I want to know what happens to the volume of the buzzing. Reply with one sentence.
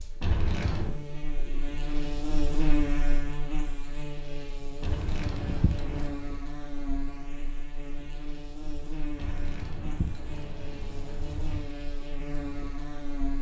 The loudness of the buzzing goes down.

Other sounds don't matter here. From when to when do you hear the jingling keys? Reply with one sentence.
You can hear the jingling keys from 0.2 to 0.9 s, from 4.8 to 6.2 s and from 9.2 to 11.7 s.